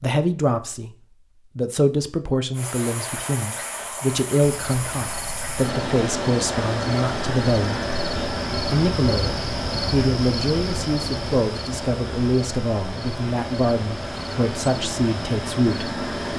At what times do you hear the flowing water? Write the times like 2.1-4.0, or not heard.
2.5-16.3.